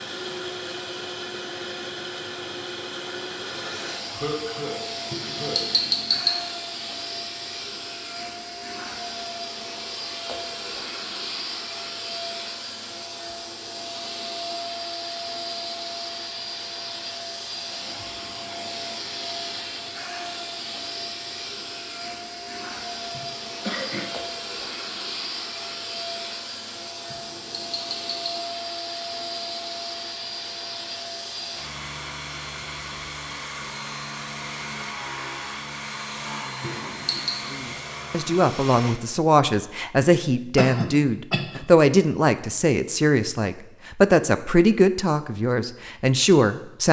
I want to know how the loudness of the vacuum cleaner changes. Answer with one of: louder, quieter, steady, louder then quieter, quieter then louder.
steady.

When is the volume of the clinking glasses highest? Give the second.
6 s.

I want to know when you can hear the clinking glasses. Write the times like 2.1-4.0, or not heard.
5.1-6.3, 27.1-28.2, 36.6-37.4.